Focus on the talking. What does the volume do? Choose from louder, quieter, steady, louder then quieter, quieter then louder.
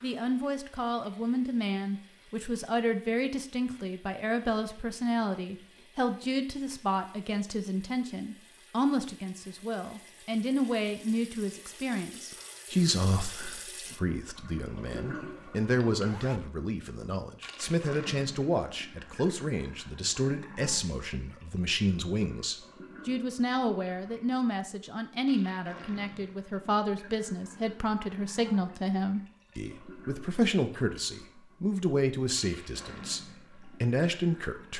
steady.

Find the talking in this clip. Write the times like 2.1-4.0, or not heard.
0.0-34.7.